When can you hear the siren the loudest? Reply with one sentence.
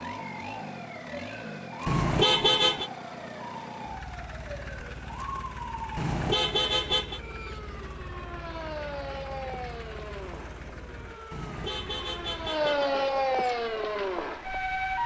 The loudest moment of the siren is at 13 seconds.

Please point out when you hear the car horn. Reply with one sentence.
You can hear the car horn from 1.9 to 2.9 s, from 6.0 to 7.2 s and from 11.3 to 12.9 s.